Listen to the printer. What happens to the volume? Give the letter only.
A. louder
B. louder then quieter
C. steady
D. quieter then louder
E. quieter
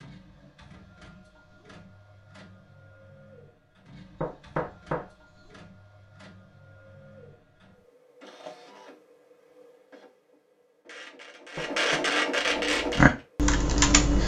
A.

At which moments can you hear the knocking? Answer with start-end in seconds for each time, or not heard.
4.2-5.5, 11.6-12.3.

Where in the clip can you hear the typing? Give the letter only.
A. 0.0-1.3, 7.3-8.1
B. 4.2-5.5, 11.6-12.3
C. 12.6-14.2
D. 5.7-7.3
C.